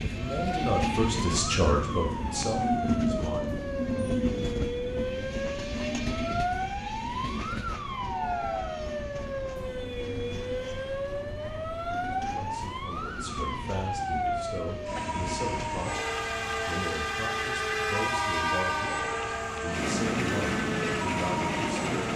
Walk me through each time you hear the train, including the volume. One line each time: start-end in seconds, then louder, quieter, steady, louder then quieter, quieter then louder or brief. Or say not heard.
0.0-22.1 quieter then louder.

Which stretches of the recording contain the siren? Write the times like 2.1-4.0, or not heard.
0.1-22.1.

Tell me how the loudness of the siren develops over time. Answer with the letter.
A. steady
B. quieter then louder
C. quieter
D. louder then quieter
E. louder
A.